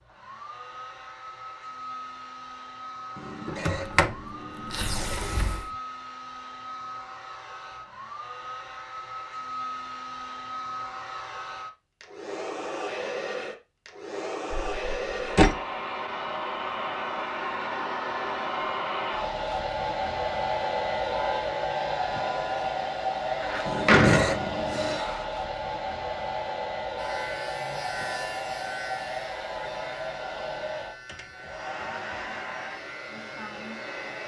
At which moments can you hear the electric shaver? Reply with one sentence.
You can hear the electric shaver from 26.9 to 34.2 s.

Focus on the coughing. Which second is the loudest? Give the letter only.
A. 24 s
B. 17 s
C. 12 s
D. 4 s
A.